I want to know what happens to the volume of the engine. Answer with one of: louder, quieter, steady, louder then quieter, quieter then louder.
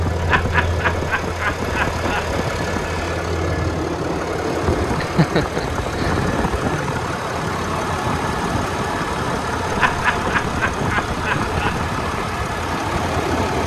steady.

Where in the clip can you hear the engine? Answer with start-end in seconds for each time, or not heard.
0.0-13.6.